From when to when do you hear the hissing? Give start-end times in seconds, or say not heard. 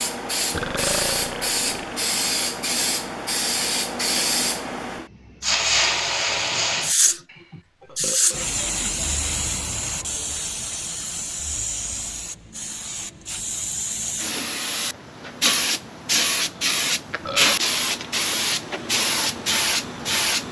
0.0-20.4.